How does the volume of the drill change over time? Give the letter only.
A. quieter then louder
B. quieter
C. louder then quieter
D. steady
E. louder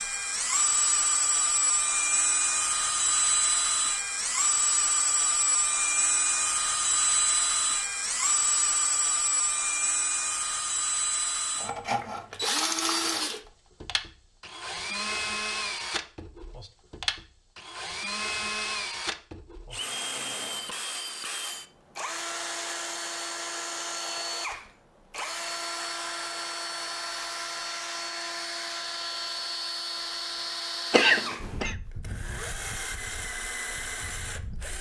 B.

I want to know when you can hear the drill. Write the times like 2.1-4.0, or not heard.
0.0-34.7.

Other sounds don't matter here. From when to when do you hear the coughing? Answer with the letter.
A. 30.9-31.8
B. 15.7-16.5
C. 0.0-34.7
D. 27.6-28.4
A.